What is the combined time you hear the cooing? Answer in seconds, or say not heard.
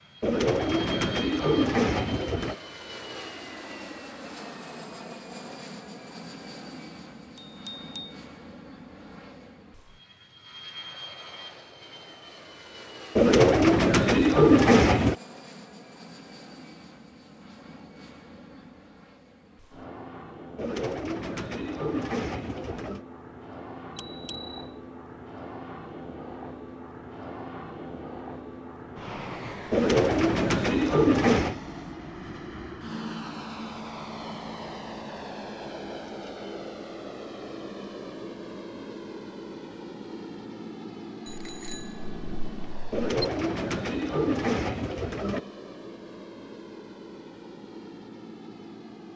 11 s.